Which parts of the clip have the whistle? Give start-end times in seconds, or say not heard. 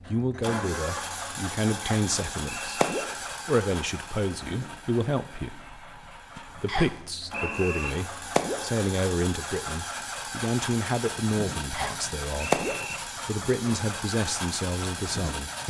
1.8-3.0, 6.7-7.9, 11.7-12.9.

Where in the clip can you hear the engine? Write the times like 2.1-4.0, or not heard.
0.0-15.6.